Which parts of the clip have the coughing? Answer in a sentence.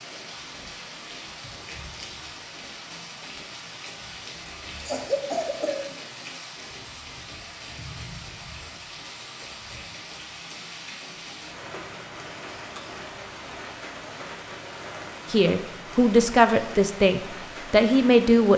You can hear the coughing from 4.8 to 5.8 s.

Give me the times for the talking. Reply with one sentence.
The talking can be heard from 15.3 to 18.5 s.